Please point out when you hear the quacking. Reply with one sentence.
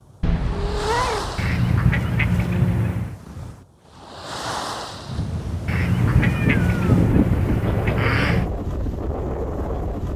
The quacking can be heard from 1.4 to 3.2 s and from 5.7 to 8.5 s.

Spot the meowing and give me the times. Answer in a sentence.
The meowing can be heard from 0.2 to 1.5 s and from 6.0 to 7.5 s.